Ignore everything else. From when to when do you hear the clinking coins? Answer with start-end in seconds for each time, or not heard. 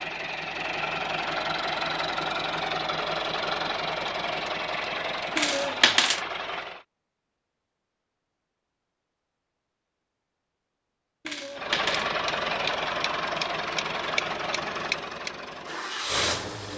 5.3-6.2, 11.2-12.1.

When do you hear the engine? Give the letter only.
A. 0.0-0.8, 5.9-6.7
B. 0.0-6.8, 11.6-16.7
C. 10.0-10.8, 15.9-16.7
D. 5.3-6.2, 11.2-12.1
B.